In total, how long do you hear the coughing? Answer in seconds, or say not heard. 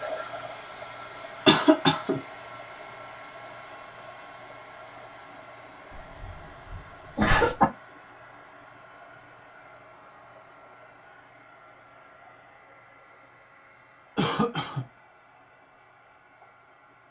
3 s.